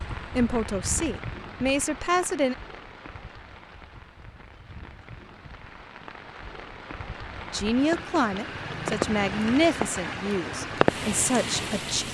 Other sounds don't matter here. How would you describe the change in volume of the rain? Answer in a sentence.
The volume of the rain goes down, then up.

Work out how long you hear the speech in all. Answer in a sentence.
You can hear the speech for 7 seconds altogether.